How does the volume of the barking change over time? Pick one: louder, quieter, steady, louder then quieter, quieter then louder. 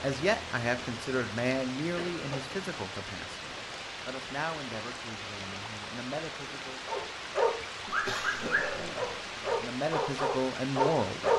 quieter then louder.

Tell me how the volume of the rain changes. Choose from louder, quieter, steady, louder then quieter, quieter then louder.
steady.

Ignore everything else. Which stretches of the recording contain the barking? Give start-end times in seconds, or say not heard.
6.8-11.3.